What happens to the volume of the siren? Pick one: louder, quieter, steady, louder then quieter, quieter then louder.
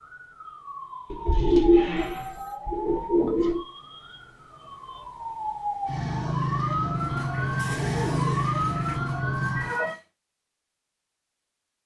louder.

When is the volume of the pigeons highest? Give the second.
2 s.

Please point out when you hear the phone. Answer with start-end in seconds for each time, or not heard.
1.9-2.6.